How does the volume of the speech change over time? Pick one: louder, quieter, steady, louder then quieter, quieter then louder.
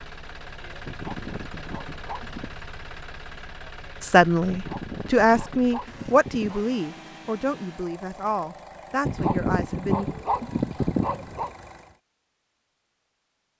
quieter.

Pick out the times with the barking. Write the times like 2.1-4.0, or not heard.
0.8-2.5, 4.5-6.7, 9.1-11.5.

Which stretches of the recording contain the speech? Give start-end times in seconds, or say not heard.
4.0-10.1.